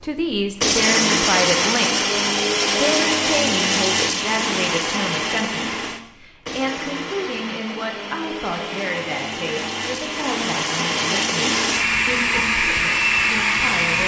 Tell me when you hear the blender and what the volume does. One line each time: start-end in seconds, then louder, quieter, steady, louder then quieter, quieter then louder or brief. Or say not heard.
0.0-14.0 quieter then louder.